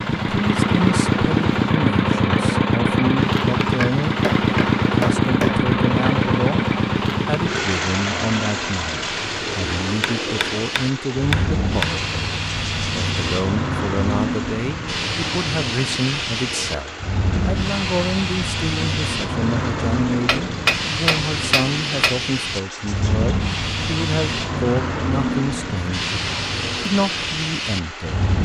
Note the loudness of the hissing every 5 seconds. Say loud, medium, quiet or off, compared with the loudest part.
quiet, medium, loud, loud, loud, loud.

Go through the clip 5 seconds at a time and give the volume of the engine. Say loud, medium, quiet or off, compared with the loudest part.
loud, loud, quiet, quiet, quiet, quiet.